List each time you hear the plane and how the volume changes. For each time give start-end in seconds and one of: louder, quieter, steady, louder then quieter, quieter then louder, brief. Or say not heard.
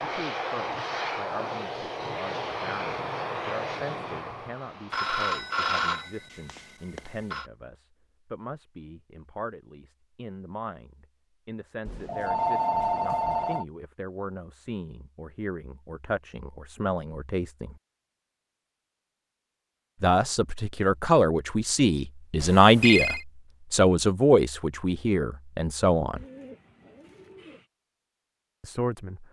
0.0-6.1 quieter.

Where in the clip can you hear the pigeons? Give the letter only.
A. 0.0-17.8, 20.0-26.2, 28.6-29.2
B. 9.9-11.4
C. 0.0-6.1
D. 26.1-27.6
D.